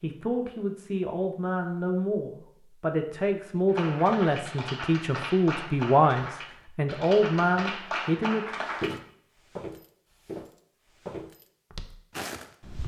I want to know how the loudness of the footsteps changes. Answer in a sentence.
The loudness of the footsteps goes down, then up.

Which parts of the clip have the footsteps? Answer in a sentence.
The footsteps can be heard from 8.7 to 12.8 s.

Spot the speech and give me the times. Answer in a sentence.
The speech can be heard from 0.0 to 8.6 s.